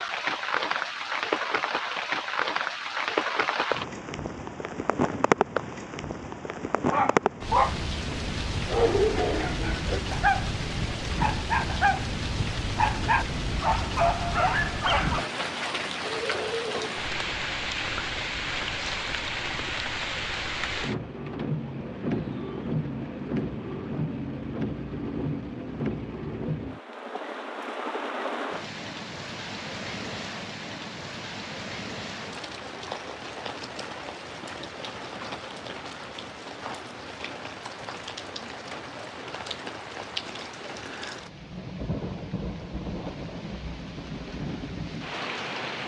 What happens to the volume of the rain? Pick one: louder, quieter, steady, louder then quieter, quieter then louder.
quieter.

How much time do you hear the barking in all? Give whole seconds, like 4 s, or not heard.
8 s.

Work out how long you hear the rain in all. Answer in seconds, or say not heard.
46 s.